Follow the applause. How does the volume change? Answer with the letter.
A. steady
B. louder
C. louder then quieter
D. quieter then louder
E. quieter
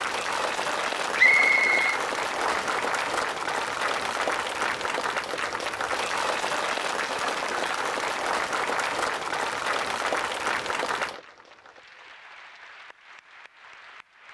E.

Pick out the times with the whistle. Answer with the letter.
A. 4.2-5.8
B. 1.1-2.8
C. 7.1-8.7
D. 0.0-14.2
B.